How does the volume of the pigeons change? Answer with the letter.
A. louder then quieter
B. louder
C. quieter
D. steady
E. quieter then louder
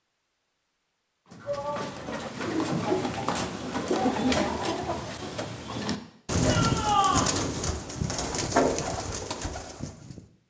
D.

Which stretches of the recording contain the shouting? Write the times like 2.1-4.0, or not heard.
1.4-2.1, 6.4-7.3.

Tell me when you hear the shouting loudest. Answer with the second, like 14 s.
7 s.